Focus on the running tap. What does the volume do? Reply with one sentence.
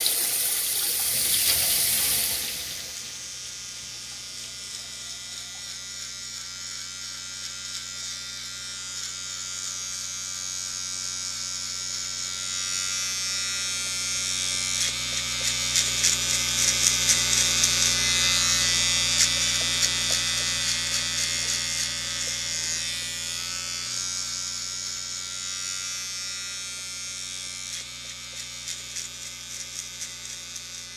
The loudness of the running tap goes down.